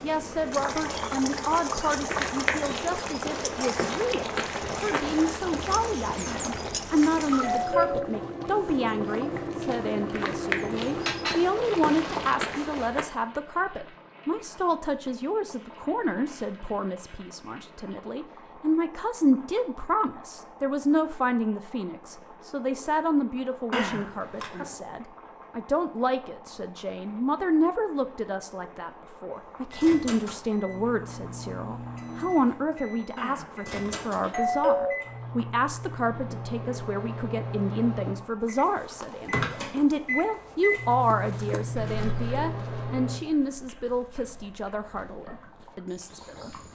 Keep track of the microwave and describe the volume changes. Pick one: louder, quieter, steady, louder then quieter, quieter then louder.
louder.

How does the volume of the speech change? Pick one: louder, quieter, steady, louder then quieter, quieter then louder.
steady.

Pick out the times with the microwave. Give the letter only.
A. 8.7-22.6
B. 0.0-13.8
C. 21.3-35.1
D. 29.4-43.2
D.